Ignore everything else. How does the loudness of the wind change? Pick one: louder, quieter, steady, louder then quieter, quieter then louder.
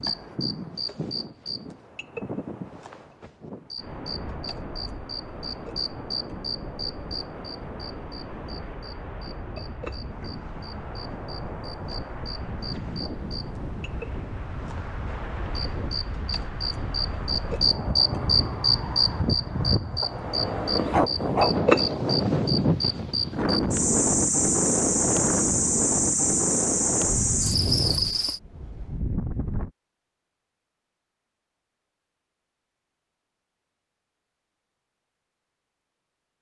louder.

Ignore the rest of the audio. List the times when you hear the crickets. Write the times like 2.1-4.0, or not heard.
0.0-28.4.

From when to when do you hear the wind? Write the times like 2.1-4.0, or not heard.
0.0-29.7.